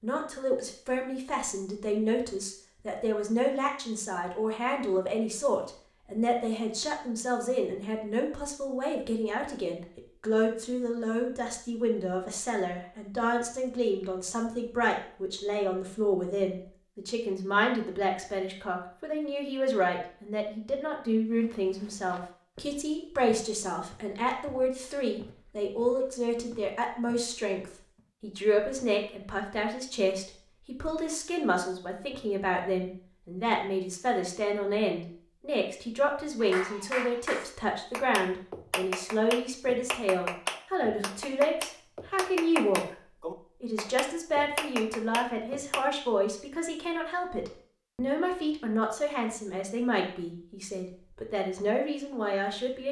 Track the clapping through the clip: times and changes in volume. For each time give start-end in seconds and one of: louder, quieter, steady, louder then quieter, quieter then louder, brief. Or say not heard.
36.4-45.9 steady.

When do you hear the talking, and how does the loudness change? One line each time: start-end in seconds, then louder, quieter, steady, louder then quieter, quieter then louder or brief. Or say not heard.
0.0-52.8 steady.